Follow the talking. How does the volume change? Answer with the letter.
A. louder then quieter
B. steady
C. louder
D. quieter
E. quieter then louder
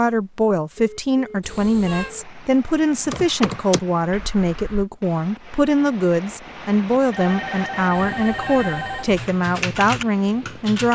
B.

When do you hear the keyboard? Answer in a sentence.
The keyboard can be heard from 3.0 to 4.8 s and from 9.2 to 10.9 s.